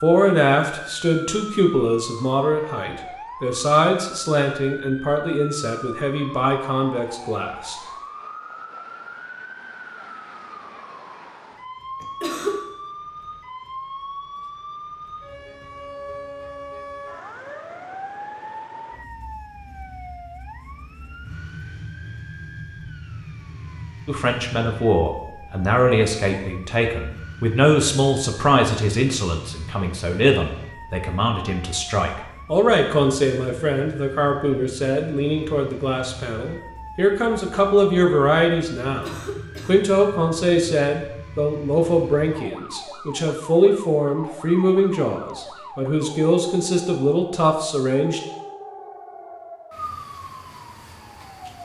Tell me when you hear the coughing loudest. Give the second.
12 s.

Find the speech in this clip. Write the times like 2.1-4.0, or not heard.
0.0-7.8, 24.1-48.2.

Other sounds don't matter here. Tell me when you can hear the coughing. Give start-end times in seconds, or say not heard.
12.0-12.6, 39.0-39.8.